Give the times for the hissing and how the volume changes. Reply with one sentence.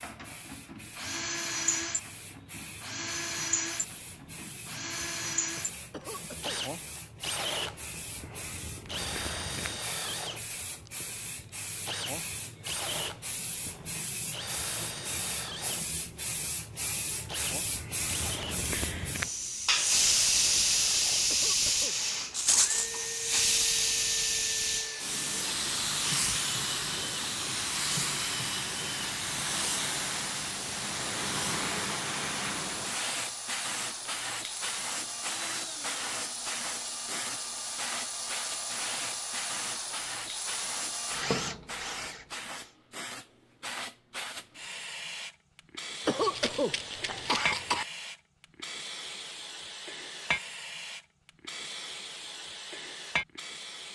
You can hear the hissing from 0.0 to 53.9 s, getting louder then quieter.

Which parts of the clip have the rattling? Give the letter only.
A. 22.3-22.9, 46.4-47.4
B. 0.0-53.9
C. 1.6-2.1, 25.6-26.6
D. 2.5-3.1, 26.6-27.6
A.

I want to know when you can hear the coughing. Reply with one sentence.
You can hear the coughing from 5.9 to 7.0 s, from 21.2 to 23.1 s and from 46.0 to 47.9 s.